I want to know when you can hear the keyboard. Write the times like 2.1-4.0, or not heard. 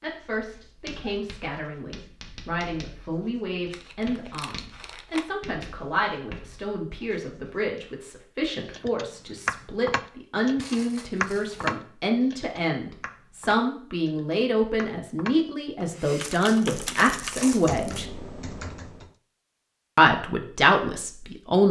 8.7-19.1.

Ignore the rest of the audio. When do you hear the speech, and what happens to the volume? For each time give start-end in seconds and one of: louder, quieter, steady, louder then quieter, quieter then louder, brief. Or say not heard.
0.0-18.1 louder
19.9-21.6 brief.